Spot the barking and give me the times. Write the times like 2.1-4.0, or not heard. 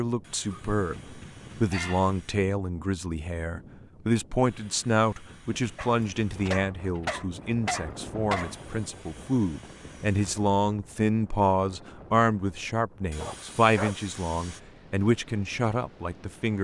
0.5-2.2, 5.8-8.6, 13.2-13.9.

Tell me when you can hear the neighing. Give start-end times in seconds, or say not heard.
not heard.